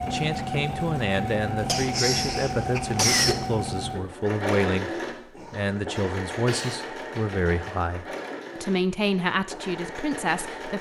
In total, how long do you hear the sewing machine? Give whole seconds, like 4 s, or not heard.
11 s.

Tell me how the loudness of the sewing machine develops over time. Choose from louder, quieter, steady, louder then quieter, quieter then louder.
quieter.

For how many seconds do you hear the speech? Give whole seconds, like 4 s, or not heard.
10 s.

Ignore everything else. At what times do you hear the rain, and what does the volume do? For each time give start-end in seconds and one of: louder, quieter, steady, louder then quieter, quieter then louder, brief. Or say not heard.
not heard.